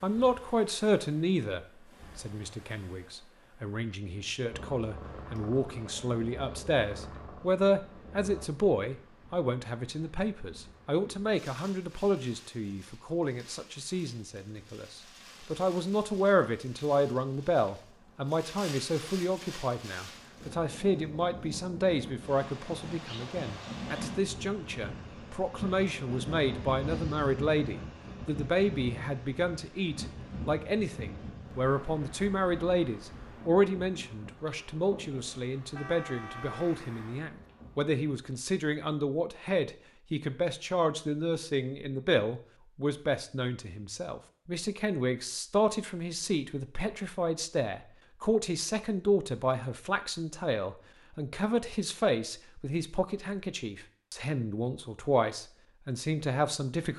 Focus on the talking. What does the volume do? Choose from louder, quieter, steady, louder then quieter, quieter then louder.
steady.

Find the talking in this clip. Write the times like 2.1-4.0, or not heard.
0.0-56.9.